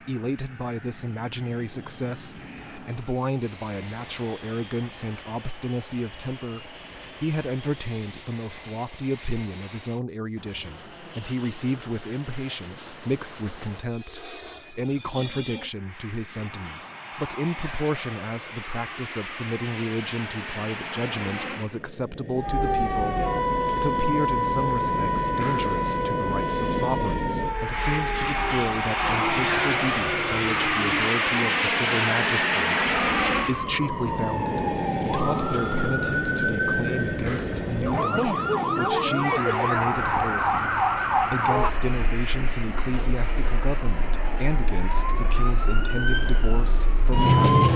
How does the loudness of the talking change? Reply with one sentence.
The loudness of the talking stays about the same.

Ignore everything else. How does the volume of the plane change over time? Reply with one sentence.
The volume of the plane goes up, then down.